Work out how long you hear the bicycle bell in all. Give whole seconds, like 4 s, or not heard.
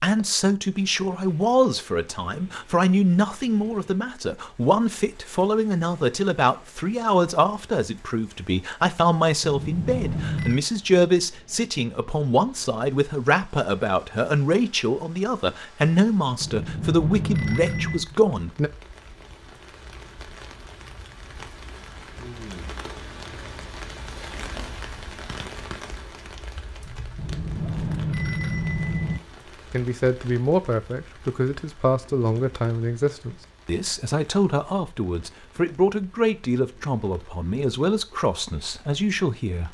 5 s.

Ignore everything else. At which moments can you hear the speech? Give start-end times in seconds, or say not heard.
0.0-18.7, 29.7-39.6.